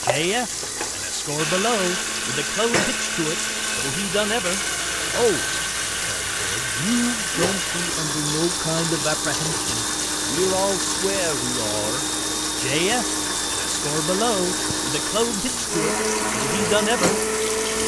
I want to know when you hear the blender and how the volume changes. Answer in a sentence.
You can hear the blender from 0.0 to 17.8 s, at a steady volume.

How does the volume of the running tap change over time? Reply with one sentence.
The volume of the running tap stays about the same.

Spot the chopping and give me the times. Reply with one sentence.
You can't hear the chopping here.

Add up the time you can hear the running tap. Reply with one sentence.
You can hear the running tap for 18 seconds altogether.